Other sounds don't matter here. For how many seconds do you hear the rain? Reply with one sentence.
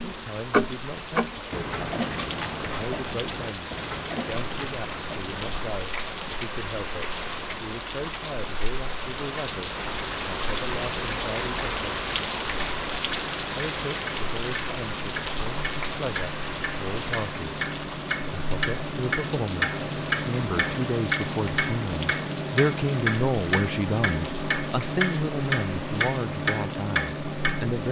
You can hear the rain for 28 seconds altogether.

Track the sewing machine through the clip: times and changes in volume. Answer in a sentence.
The sewing machine can't be heard in this clip.